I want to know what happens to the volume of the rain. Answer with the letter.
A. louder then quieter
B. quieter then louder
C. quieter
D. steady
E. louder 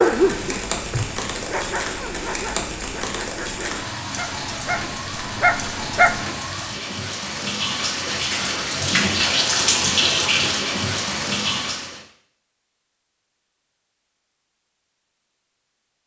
E.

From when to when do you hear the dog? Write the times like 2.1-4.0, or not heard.
0.0-6.2.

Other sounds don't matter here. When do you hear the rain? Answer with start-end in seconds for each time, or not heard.
0.0-12.0.